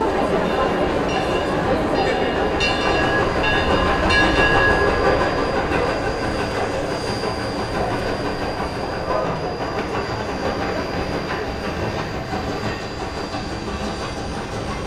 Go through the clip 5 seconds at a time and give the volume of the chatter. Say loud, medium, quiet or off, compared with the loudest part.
loud, medium, medium.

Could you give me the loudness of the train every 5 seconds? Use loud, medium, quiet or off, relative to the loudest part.
loud, loud, medium.